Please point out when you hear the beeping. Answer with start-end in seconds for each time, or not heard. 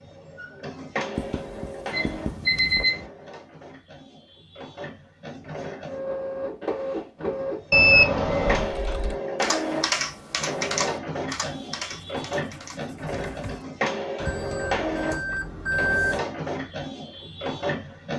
1.9-3.0, 7.7-8.8, 14.2-16.2.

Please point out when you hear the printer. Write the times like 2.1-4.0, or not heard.
0.0-18.1.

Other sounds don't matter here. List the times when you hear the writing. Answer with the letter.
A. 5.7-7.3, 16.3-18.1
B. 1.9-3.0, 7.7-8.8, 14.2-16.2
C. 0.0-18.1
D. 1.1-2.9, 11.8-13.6
D.